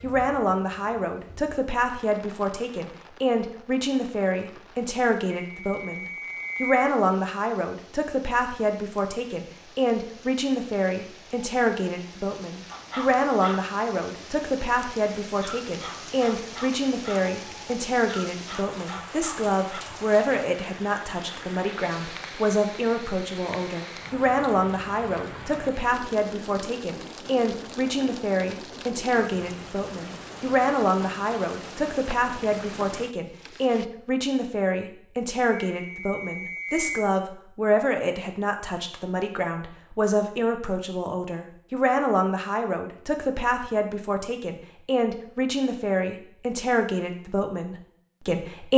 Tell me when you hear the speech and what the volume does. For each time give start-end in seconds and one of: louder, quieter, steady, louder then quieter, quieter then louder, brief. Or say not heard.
0.0-48.7 steady.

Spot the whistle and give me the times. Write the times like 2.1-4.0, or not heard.
5.3-6.8, 35.5-37.1.